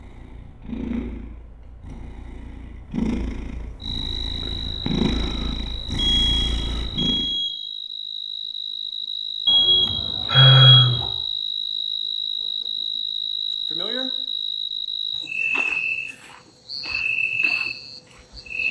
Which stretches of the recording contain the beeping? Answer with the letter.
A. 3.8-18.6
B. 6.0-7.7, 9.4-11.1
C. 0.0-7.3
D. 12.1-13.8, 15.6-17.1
B.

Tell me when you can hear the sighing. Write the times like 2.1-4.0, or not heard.
10.3-11.0.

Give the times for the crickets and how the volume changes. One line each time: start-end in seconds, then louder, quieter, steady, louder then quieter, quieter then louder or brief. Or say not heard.
3.8-18.6 louder.